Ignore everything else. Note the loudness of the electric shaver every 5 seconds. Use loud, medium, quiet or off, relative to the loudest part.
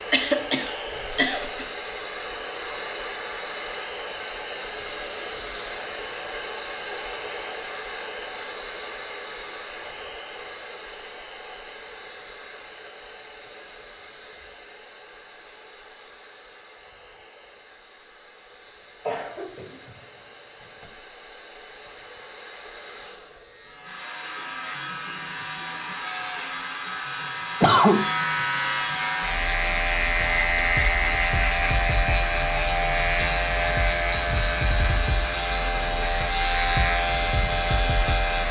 off, off, off, off, quiet, loud, loud, loud.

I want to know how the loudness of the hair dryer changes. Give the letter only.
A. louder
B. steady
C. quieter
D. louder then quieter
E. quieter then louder
E.